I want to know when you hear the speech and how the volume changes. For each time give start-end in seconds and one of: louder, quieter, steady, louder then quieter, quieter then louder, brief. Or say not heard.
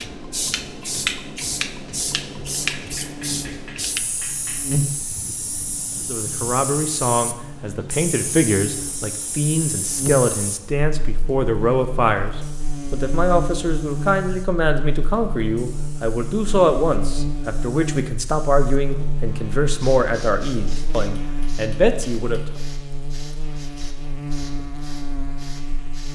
6.0-22.4 steady.